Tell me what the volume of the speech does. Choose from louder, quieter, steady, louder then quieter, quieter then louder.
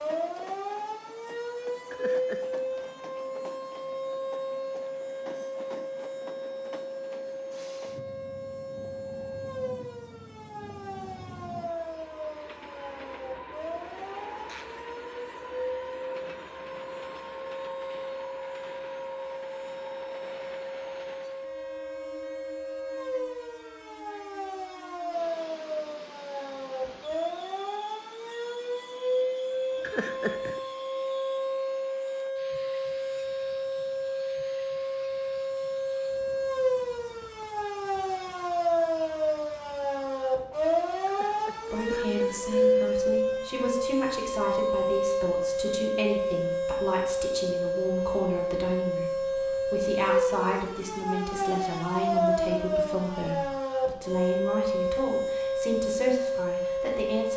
steady.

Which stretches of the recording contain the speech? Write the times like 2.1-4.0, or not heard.
41.7-57.3.